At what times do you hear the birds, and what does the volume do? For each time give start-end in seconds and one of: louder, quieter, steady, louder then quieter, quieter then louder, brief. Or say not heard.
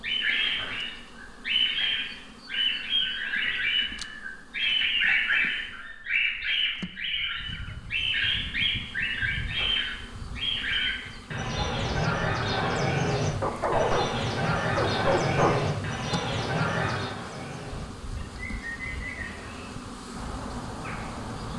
0.0-21.5 quieter.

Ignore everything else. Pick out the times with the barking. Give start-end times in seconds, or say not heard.
13.4-15.8.